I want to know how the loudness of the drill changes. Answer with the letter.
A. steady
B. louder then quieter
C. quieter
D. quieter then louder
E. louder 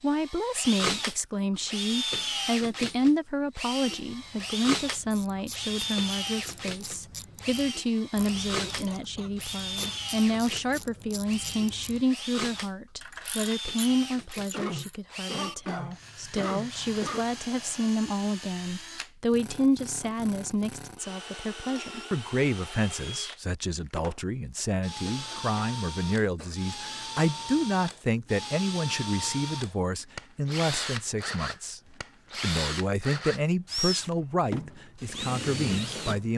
D.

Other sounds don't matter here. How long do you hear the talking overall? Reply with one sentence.
The talking can be heard for 36 seconds in total.